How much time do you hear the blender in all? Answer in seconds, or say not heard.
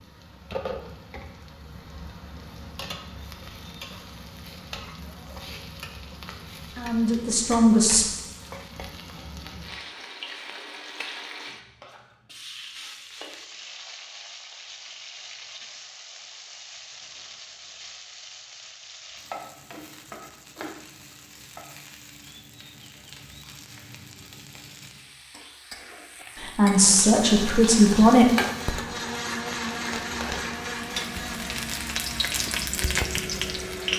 7 s.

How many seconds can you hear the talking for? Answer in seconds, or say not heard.
3 s.